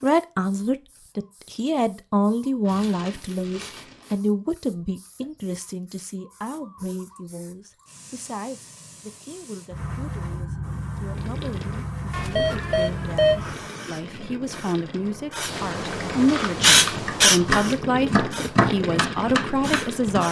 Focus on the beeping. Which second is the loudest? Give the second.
13 s.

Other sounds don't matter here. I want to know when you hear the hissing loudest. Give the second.
17 s.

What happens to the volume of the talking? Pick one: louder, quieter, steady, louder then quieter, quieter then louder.
quieter then louder.